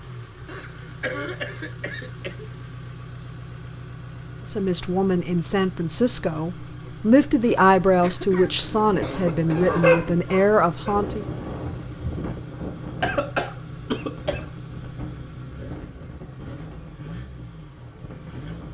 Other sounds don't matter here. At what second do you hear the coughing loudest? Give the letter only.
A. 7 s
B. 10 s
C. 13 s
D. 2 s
C.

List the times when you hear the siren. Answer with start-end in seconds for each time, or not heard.
not heard.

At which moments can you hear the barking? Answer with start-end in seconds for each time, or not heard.
9.1-10.9.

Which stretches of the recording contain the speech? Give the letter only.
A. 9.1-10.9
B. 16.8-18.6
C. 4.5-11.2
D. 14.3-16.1
C.